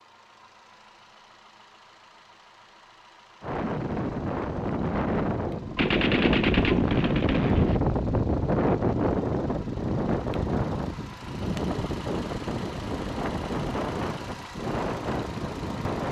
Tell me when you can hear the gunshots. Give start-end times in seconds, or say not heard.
5.8-7.8.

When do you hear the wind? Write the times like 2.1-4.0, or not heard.
3.4-16.0.